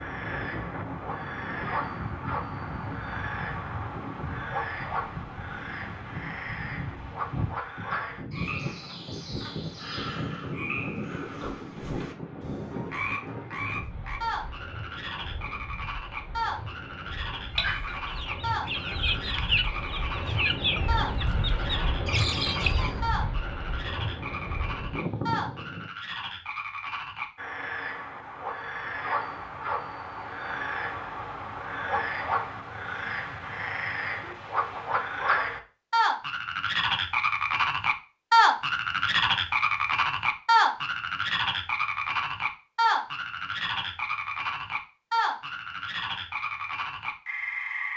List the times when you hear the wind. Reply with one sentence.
You can hear the wind from 0.0 to 25.9 s.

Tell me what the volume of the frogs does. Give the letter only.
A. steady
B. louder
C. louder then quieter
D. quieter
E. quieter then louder
B.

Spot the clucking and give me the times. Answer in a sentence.
The clucking can be heard from 17.5 to 23.0 s.